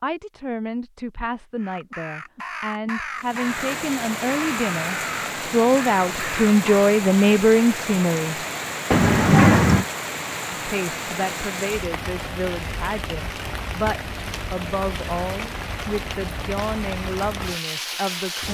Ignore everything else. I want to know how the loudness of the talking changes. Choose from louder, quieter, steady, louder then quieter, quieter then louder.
louder then quieter.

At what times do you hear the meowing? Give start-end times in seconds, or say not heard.
8.9-9.8.